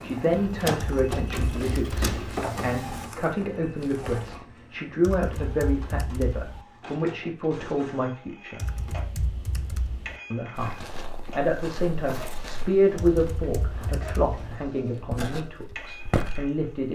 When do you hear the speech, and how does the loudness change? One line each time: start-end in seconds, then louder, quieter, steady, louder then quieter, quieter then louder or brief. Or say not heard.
0.0-8.7 steady
10.3-10.8 brief
11.3-16.9 louder then quieter.